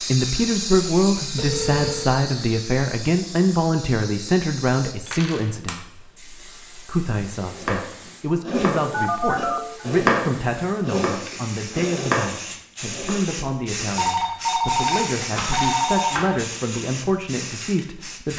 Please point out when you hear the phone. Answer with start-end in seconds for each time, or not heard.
1.4-2.1, 8.8-9.8, 13.9-16.3.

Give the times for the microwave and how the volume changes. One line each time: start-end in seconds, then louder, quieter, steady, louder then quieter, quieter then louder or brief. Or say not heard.
not heard.